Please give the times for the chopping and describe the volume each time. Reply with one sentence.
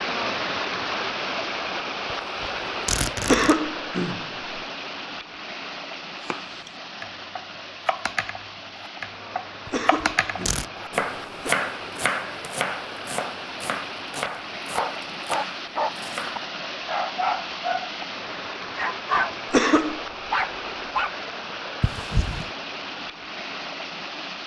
You can hear the chopping from 6.2 to 16.4 s, getting louder then quieter.